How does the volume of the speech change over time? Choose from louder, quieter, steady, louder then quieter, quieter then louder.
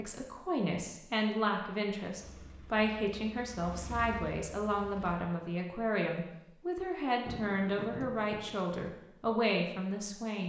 steady.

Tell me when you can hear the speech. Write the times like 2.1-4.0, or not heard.
0.0-10.4.